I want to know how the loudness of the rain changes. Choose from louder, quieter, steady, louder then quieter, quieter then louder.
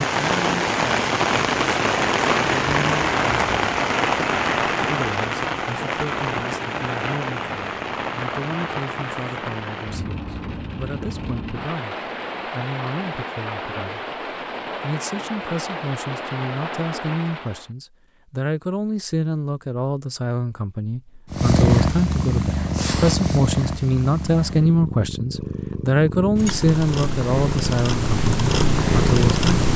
quieter.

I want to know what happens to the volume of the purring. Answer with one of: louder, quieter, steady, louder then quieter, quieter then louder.
quieter then louder.